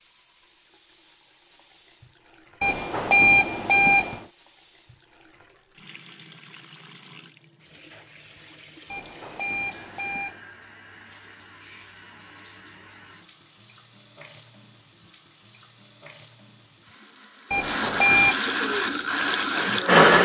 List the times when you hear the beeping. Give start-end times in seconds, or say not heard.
2.6-4.2, 8.9-10.4, 17.5-18.4.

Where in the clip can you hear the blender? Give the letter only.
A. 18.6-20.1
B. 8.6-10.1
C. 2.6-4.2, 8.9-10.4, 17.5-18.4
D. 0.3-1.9
A.